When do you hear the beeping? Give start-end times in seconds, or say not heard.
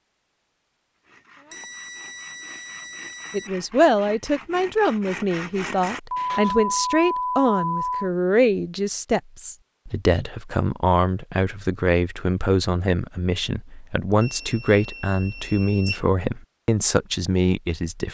1.5-3.5, 6.1-8.1, 14.2-16.1.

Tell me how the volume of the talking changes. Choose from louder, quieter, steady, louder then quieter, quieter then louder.
steady.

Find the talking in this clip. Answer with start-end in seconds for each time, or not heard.
3.3-18.0.